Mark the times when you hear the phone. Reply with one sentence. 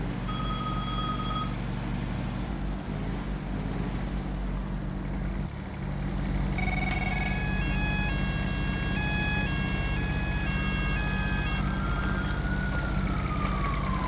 You can hear the phone from 0.2 to 1.6 s, from 6.5 to 7.5 s and from 10.4 to 12.4 s.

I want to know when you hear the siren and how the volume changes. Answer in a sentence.
The siren can be heard from 7.0 to 14.0 s, at a steady volume.